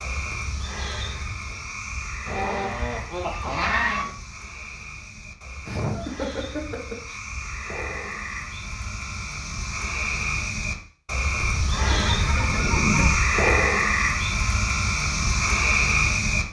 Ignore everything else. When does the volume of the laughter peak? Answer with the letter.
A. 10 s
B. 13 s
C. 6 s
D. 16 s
C.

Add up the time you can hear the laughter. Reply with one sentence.
You can hear the laughter for 4 seconds altogether.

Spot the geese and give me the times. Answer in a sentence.
The geese can be heard from 2.2 to 4.2 s and from 11.6 to 13.3 s.